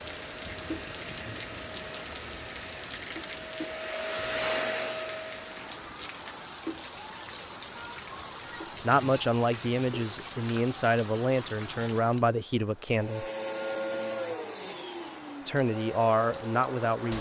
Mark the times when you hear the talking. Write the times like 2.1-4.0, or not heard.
8.8-13.2, 15.4-17.1.